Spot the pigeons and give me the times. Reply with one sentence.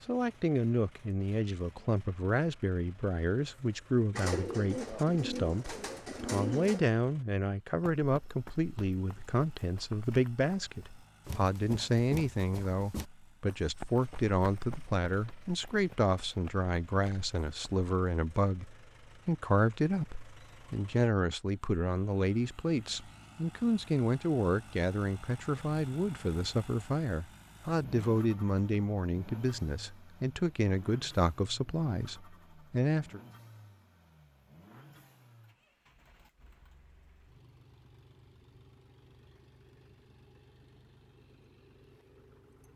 The pigeons can be heard from 4.1 to 6.8 s.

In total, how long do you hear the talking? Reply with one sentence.
The talking can be heard for 33 seconds in total.